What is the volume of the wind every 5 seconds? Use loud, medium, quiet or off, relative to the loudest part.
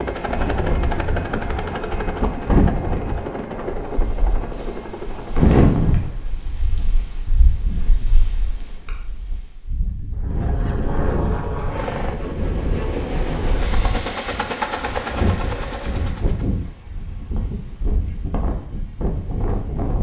loud, loud, medium, medium.